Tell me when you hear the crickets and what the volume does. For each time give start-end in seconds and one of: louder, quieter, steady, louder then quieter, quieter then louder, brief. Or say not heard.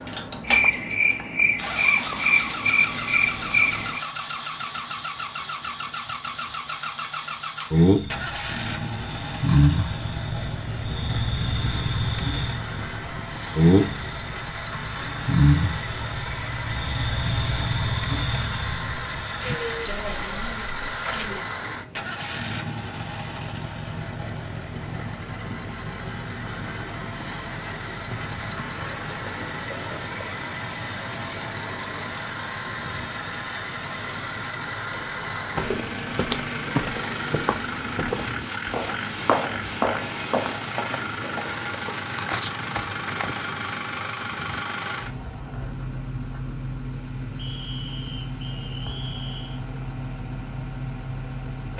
0.0-51.7 steady.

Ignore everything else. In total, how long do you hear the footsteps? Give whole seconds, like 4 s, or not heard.
8 s.